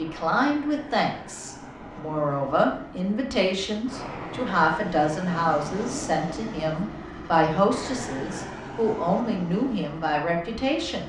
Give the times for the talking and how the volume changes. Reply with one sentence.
You can hear the talking from 0.0 to 11.0 s, at a steady volume.